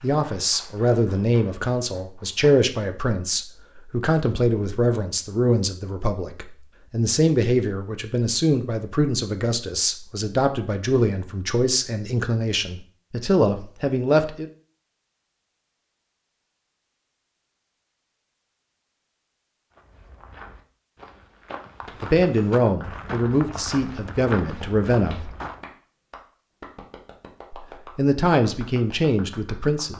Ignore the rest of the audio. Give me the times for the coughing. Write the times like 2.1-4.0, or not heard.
not heard.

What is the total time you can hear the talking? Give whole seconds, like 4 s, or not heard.
20 s.